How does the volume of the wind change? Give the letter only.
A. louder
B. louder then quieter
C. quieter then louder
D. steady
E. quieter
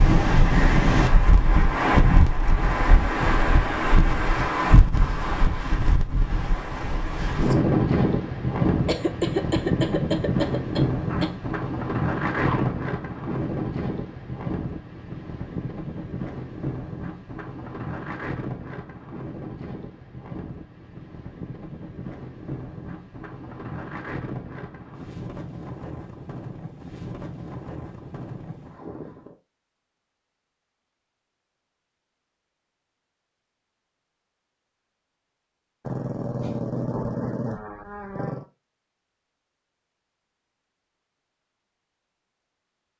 E.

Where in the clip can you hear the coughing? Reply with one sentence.
The coughing can be heard from 8.8 to 11.3 s.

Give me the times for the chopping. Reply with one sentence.
The chopping can't be heard in this clip.